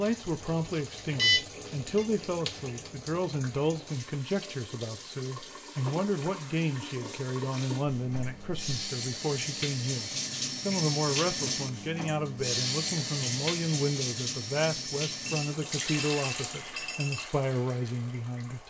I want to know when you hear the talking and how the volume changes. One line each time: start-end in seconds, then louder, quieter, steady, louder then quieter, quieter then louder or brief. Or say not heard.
0.0-18.6 steady.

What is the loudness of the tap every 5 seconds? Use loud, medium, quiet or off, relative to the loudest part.
medium, medium, loud, medium.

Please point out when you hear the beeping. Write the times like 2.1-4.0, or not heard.
1.1-2.0, 7.8-8.8, 15.2-17.2.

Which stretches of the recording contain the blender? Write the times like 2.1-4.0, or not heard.
not heard.